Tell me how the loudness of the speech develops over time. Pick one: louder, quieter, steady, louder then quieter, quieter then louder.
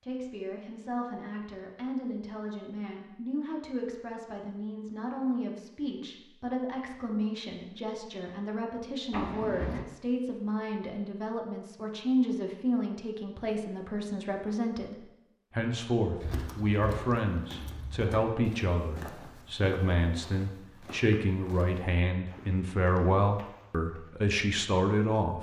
louder.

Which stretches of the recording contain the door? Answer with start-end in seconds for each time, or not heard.
9.1-9.8.